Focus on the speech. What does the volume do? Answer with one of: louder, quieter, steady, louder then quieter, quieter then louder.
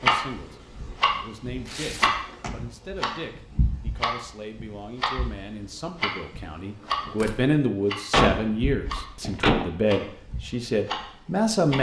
louder.